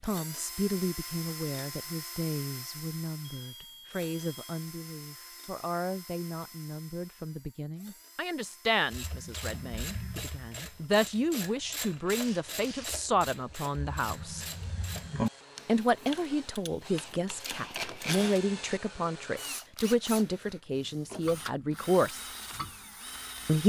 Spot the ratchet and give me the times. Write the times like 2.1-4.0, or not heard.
8.8-18.4.